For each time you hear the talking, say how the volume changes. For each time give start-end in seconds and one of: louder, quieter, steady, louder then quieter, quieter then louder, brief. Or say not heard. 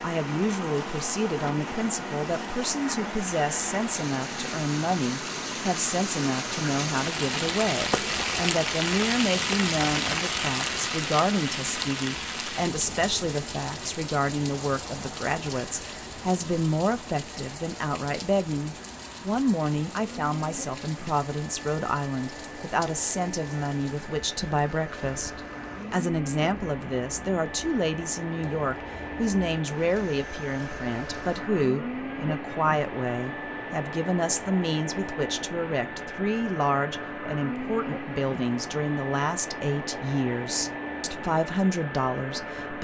0.0-42.7 steady.